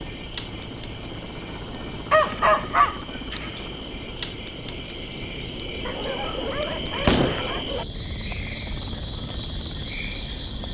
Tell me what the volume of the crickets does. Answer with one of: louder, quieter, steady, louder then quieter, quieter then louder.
louder.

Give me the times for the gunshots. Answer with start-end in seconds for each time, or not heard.
7.0-7.5.